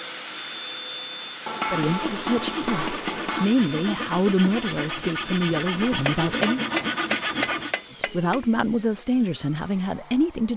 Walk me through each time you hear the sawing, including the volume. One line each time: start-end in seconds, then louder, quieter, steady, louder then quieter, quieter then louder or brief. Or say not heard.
1.7-7.8 louder.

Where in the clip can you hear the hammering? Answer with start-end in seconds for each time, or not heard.
1.4-3.5, 6.0-8.4.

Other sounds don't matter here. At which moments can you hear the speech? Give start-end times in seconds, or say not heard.
1.7-6.6, 8.0-10.5.